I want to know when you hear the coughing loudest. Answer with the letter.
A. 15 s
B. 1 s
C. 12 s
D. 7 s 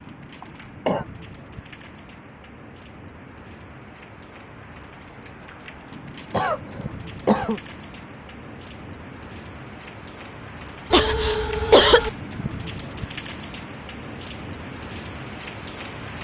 C.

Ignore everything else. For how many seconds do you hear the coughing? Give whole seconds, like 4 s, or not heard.
3 s.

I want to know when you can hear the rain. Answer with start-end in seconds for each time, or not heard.
0.0-16.1.